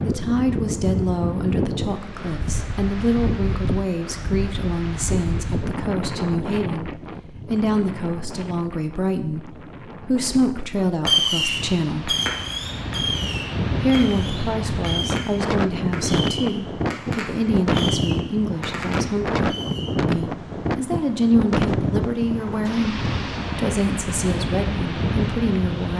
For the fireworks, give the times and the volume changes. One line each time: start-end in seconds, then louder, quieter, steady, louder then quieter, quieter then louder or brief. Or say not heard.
11.1-19.9 quieter.